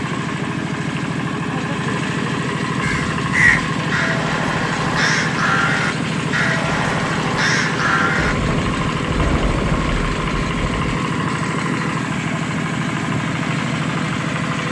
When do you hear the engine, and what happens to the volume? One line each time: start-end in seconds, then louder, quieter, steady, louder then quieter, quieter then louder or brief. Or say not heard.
0.0-14.6 steady.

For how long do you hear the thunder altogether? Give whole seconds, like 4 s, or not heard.
3 s.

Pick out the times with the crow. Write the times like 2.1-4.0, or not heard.
2.8-8.3.